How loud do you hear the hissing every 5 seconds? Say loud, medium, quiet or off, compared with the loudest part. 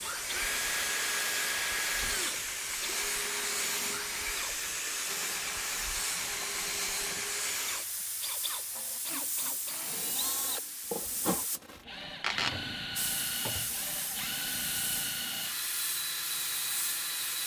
loud, loud, loud, medium.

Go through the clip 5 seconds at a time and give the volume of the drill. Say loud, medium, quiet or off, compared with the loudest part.
loud, medium, loud, loud.